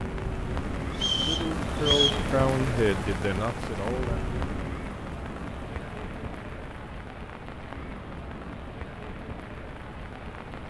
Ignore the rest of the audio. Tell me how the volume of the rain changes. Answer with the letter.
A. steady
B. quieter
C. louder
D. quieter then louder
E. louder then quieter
B.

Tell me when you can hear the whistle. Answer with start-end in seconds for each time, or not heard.
0.9-2.2.